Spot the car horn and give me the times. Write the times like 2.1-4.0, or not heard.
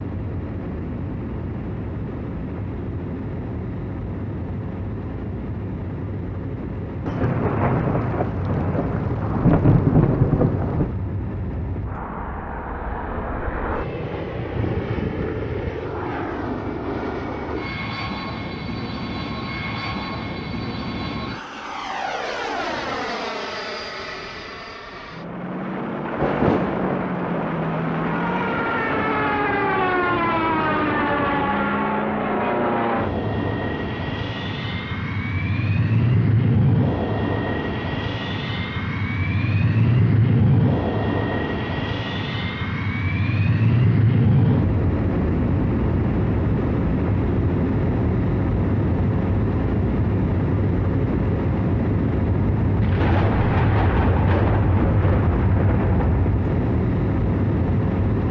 not heard.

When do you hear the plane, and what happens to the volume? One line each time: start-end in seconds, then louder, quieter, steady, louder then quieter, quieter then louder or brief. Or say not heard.
0.0-58.2 louder.